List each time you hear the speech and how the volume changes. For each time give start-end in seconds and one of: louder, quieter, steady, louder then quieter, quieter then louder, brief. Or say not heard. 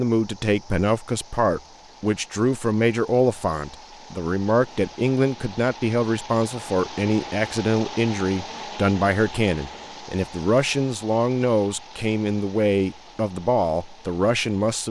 0.0-14.8 steady.